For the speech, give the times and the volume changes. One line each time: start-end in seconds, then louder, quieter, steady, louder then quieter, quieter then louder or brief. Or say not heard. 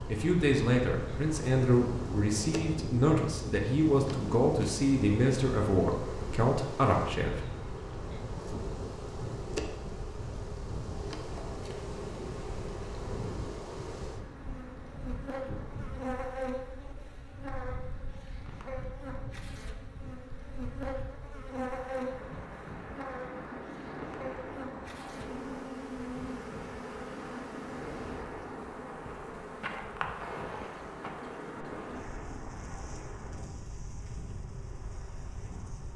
0.1-7.5 steady.